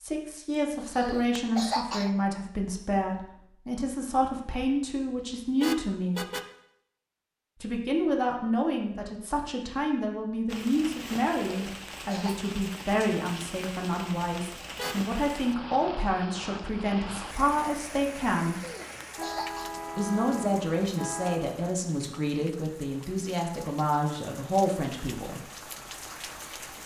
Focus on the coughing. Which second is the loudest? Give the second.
2 s.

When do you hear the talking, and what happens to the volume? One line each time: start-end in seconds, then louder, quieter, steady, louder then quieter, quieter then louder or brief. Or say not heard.
0.0-6.2 steady
7.6-18.6 steady
19.9-25.4 steady.